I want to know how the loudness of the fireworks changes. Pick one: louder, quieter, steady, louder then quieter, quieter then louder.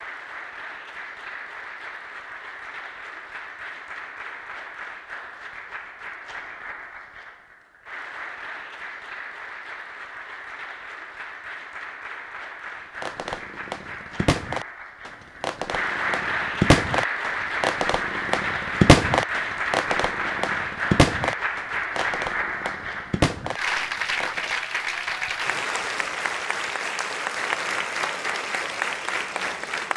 louder then quieter.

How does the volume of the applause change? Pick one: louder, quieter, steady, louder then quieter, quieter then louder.
louder.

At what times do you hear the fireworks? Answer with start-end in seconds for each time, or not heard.
13.0-24.6.